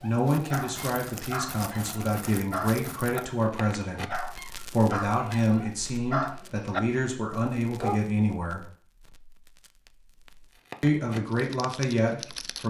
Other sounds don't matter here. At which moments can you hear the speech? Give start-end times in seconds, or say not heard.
0.0-8.7, 10.8-12.6.